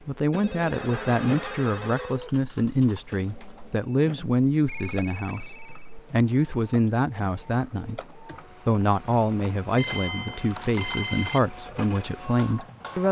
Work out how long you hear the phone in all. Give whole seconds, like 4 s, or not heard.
5 s.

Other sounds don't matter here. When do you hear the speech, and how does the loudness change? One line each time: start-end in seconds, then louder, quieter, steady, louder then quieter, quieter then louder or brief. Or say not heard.
0.1-13.0 steady.